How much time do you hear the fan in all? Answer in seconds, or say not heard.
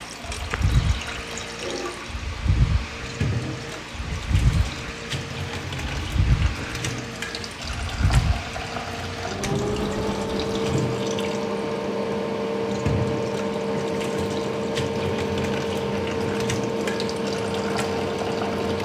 19 s.